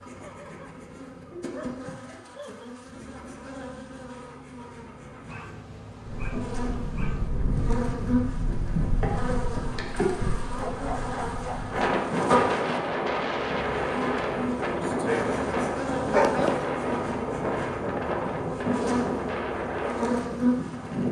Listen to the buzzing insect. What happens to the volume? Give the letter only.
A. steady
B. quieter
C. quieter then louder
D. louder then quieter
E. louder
E.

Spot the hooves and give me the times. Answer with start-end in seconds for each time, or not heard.
not heard.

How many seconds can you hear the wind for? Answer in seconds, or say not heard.
15 s.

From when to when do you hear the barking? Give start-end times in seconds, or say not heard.
0.2-0.8, 1.5-2.7, 5.2-7.3, 10.6-11.8, 16.1-16.6.